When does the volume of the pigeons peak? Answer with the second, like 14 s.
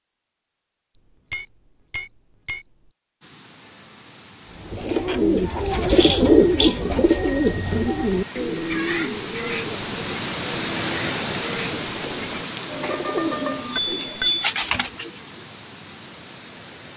6 s.